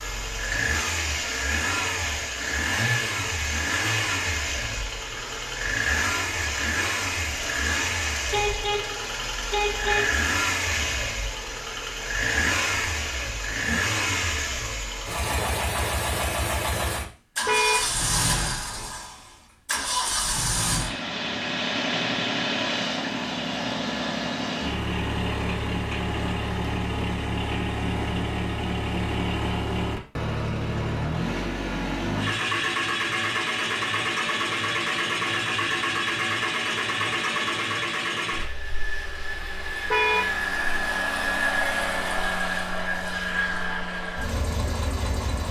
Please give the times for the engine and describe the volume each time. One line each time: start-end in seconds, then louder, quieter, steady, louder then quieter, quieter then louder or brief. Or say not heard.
0.0-45.4 steady.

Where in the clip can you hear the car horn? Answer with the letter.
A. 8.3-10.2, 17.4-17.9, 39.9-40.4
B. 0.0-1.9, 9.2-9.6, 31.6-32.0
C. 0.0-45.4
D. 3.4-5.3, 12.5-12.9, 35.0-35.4
A.